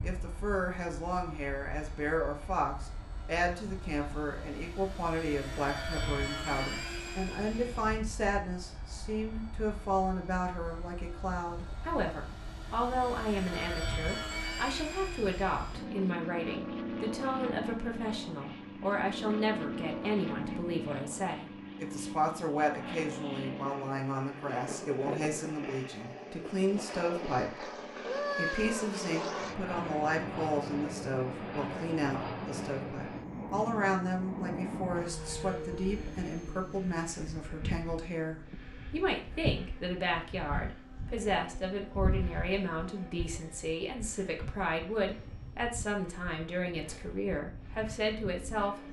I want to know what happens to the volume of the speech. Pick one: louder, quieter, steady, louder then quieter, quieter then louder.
steady.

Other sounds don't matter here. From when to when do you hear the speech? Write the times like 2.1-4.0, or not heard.
0.0-48.8.